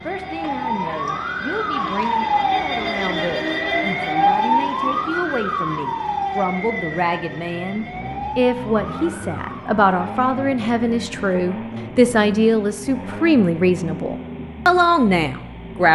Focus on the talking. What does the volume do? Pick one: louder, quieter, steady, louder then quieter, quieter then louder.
louder.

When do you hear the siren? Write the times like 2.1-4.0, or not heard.
0.0-11.3.